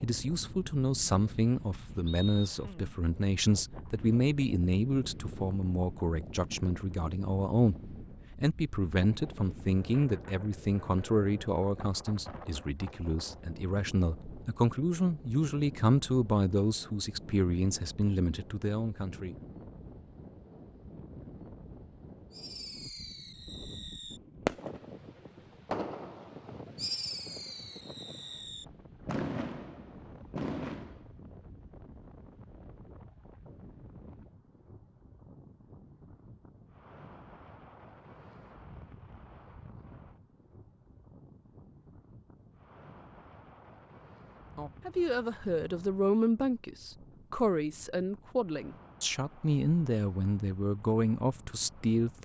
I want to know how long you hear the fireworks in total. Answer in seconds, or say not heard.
9 s.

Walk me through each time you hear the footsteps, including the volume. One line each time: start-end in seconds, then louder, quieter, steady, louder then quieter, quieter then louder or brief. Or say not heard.
not heard.